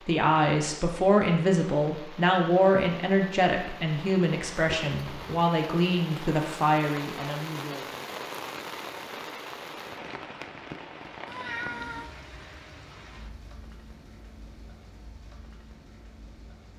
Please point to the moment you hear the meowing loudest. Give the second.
12 s.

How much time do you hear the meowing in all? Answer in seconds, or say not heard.
2 s.